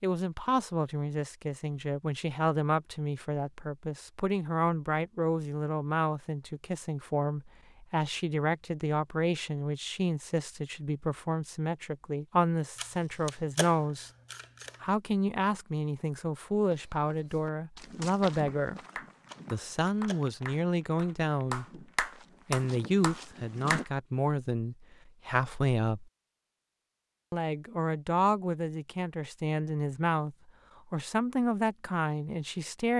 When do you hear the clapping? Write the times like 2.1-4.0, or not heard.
18.4-23.9.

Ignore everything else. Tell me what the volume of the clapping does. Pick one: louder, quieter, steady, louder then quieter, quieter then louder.
louder.